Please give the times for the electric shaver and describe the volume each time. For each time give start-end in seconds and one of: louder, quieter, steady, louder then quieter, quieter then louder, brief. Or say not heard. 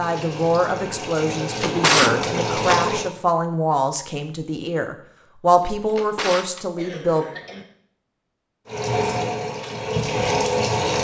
not heard.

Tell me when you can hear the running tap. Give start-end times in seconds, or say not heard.
0.0-3.1, 8.7-10.9.